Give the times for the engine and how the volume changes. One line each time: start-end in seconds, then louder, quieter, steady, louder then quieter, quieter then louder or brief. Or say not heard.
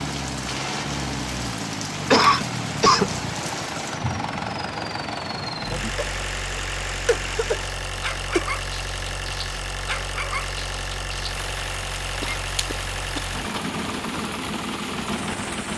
0.0-15.7 steady.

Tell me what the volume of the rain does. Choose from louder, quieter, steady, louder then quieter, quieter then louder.
steady.